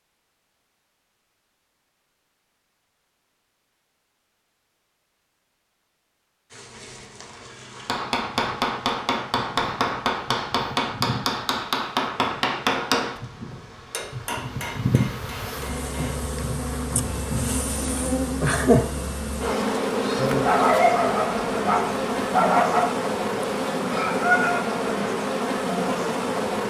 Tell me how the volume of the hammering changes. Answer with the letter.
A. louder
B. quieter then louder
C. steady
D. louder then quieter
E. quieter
E.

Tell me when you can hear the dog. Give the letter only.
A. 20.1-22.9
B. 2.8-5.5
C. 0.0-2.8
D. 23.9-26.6
A.